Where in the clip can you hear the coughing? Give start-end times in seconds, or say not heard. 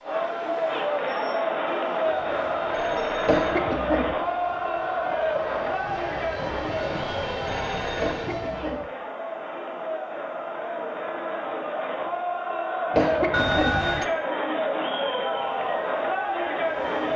3.2-4.2, 8.0-8.9, 12.9-13.8.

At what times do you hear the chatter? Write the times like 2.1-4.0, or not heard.
0.0-17.1.